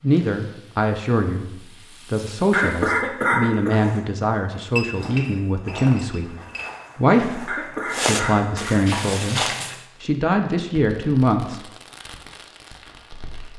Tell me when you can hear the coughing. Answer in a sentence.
You can hear the coughing from 2.5 to 3.8 s and from 7.5 to 9.2 s.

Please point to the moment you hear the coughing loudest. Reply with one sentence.
The volume of the coughing peaks at 3 seconds.